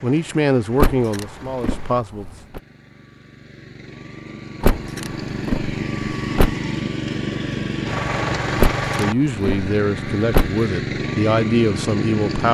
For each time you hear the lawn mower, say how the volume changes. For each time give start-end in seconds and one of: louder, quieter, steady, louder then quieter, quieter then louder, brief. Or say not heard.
0.0-12.4 louder.